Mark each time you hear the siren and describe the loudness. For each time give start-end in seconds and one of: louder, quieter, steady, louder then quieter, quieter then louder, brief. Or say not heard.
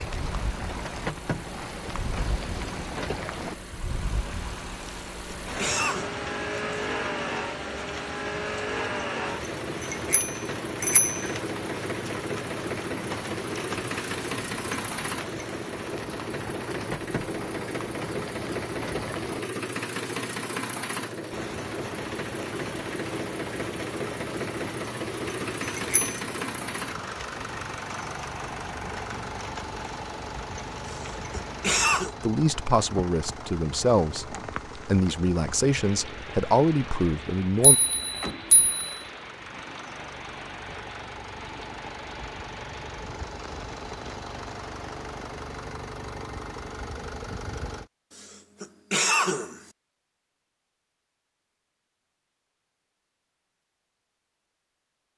not heard.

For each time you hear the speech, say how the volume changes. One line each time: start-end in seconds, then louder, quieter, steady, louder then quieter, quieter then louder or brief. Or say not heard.
32.2-37.8 steady.